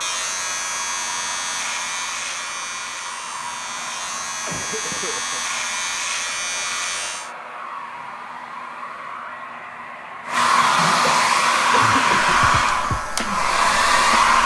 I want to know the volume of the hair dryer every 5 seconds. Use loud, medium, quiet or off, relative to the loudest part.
quiet, quiet, loud.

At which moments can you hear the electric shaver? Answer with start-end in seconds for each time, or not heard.
0.0-7.3, 12.3-14.3.